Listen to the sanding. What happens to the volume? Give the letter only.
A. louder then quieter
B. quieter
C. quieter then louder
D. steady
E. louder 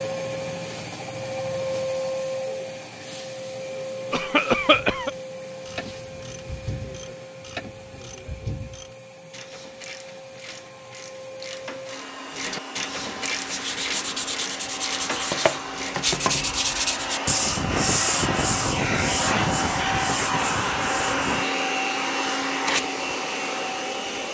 A.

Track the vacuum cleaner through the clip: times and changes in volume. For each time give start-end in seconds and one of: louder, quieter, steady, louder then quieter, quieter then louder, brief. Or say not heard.
0.0-24.2 quieter then louder.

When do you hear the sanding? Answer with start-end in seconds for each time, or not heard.
13.3-21.5.